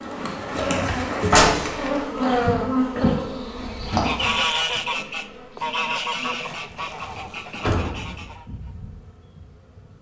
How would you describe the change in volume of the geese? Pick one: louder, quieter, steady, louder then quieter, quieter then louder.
quieter.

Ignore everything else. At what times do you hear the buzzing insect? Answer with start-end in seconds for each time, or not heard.
0.0-9.9.